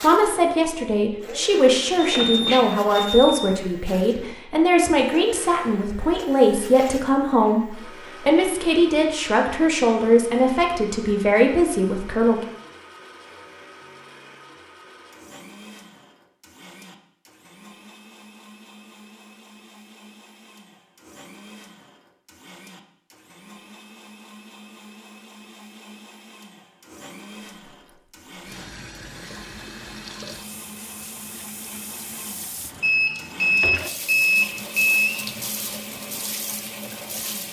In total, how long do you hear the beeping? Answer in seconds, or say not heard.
4 s.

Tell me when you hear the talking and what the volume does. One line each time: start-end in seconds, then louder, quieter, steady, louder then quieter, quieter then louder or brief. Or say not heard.
0.0-12.4 steady.